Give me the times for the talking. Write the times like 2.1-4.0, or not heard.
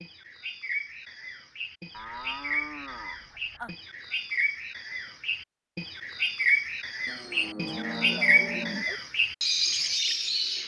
not heard.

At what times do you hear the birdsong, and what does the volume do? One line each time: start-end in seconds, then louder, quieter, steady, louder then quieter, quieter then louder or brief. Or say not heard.
0.0-10.6 louder.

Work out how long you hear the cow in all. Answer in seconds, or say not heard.
4 s.